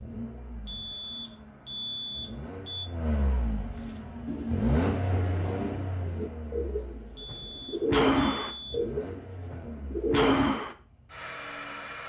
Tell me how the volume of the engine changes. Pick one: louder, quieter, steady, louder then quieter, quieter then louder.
louder then quieter.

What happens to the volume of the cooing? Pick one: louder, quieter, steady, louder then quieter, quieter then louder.
louder.